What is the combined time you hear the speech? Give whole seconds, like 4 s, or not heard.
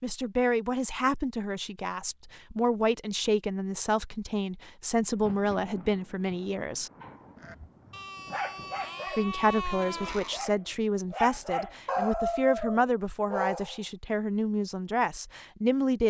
14 s.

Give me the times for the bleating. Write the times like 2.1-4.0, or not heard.
7.3-10.6.